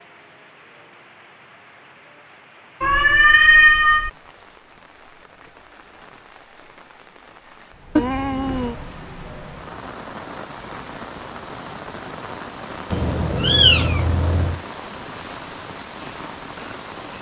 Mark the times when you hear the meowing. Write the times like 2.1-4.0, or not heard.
2.8-4.1, 8.0-8.8, 12.9-14.6.